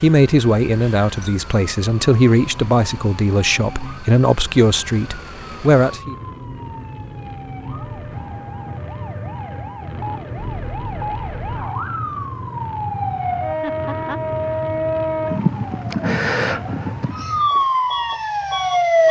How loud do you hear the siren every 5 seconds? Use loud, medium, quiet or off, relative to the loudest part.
quiet, quiet, medium, loud.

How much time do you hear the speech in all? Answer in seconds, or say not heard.
6 s.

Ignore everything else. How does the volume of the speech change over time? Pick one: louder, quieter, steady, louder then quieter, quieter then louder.
steady.